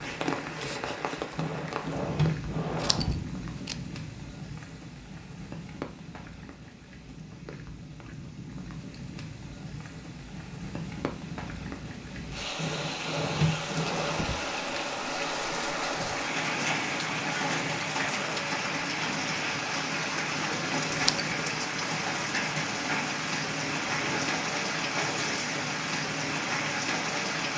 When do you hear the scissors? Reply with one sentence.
You can hear the scissors from 2.7 to 3.8 s and from 20.9 to 21.3 s.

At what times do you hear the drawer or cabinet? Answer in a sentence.
The drawer or cabinet can be heard from 1.4 to 3.2 s, from 12.6 to 14.4 s and from 23.8 to 25.3 s.